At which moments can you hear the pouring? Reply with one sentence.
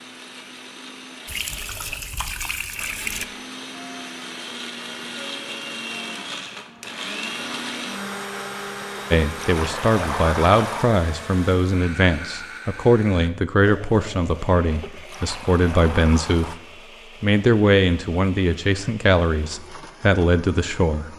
The pouring can be heard from 1.2 to 3.2 s, from 8.9 to 10.8 s and from 14.7 to 16.6 s.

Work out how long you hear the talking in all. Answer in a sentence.
The talking can be heard for 11 seconds in total.